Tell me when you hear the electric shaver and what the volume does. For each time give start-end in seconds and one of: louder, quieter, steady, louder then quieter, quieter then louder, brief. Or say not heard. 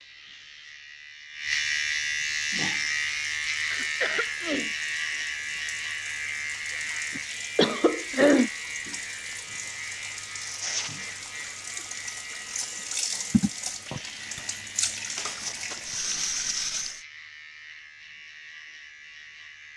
0.0-19.7 quieter.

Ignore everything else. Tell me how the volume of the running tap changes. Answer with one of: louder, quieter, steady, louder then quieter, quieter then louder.
louder.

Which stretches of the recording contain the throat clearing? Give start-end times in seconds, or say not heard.
3.7-4.7, 7.2-8.5, 13.3-14.4.